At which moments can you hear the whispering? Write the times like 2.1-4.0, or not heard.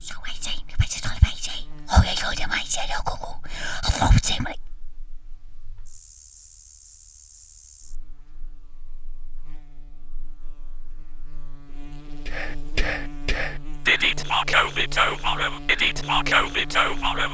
0.0-4.5, 12.2-17.2.